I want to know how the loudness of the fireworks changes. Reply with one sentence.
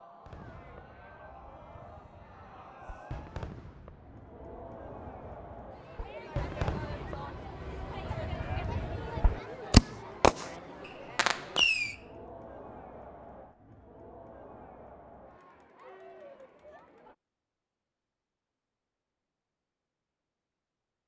The loudness of the fireworks goes up.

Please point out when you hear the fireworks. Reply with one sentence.
You can hear the fireworks from 0.2 to 11.9 s.